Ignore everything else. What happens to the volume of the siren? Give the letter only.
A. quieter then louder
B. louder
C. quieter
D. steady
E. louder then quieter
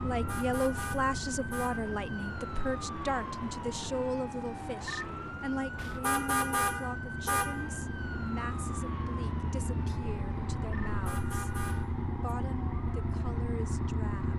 C.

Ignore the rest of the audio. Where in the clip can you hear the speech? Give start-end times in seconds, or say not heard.
0.0-11.5, 12.2-14.3.